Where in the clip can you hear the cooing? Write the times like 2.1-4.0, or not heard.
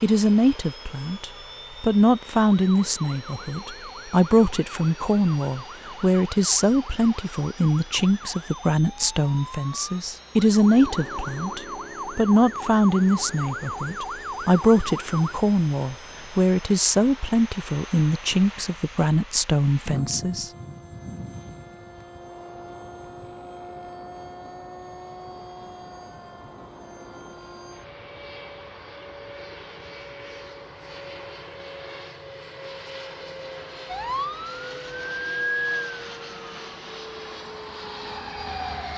not heard.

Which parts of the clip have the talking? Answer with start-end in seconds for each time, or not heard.
0.0-20.5.